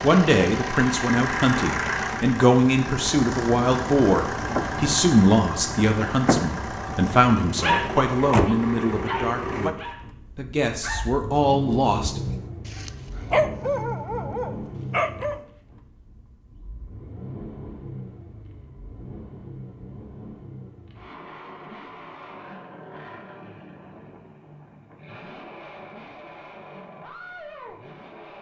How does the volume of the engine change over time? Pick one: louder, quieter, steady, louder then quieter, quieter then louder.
quieter.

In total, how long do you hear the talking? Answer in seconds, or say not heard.
12 s.